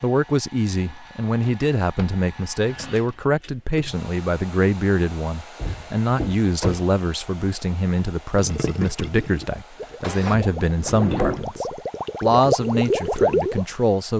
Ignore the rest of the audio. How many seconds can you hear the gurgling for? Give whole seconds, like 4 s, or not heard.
5 s.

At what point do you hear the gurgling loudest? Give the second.
13 s.